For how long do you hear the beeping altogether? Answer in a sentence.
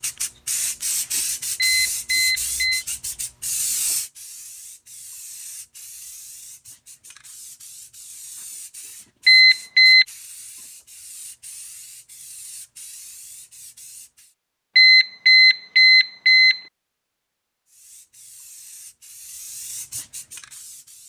You can hear the beeping for 4 seconds altogether.